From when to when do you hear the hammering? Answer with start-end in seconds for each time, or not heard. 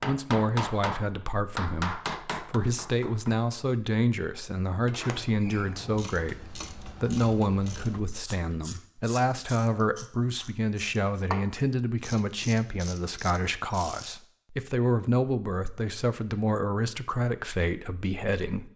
0.0-3.4.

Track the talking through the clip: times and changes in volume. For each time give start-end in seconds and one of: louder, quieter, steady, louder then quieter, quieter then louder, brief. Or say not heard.
0.0-18.7 steady.